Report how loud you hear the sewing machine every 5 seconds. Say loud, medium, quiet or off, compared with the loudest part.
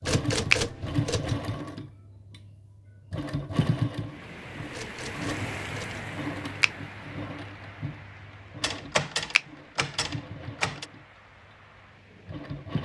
loud, medium, medium.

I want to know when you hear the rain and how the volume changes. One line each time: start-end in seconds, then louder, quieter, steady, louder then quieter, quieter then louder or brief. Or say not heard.
4.0-12.7 quieter.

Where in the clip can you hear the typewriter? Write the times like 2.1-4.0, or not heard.
0.1-1.4, 4.7-6.0, 8.6-10.8.